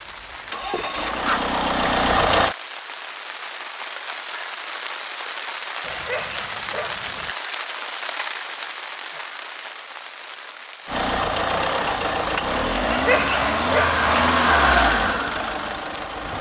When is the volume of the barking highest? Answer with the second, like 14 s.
13 s.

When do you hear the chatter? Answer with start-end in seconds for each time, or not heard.
not heard.